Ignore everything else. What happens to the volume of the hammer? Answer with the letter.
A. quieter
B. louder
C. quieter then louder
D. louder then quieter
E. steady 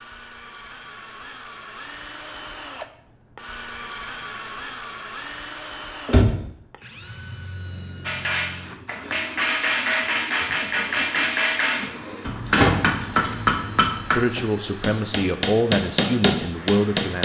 E.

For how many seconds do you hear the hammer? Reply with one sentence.
You can hear the hammer for 9 seconds altogether.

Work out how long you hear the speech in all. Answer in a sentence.
The speech can be heard for 3 seconds in total.